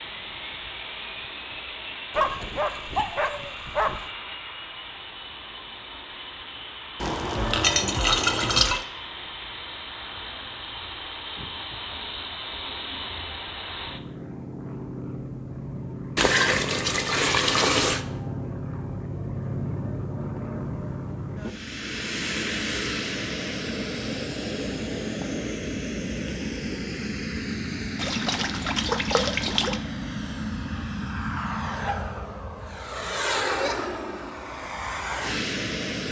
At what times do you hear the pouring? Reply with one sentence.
You can hear the pouring from 7.0 to 8.8 s, from 16.1 to 18.0 s and from 27.9 to 29.8 s.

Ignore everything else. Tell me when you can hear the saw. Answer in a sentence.
The saw can't be heard in this clip.